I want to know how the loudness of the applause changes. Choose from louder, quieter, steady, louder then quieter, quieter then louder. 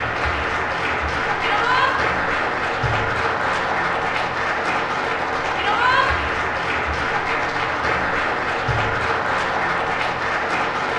steady.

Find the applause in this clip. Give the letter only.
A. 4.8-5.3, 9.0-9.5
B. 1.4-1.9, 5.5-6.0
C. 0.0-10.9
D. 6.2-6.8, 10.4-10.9
C.